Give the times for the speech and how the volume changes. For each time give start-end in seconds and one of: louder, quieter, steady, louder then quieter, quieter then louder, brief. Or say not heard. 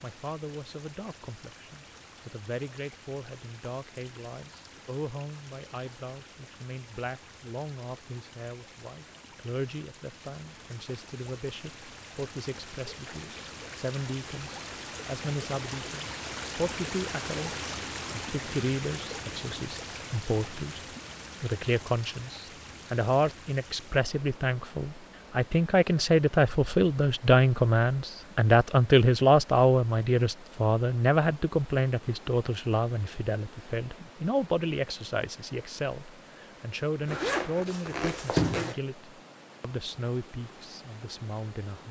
0.0-20.8 louder
21.4-41.8 louder then quieter.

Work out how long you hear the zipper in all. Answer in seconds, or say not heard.
2 s.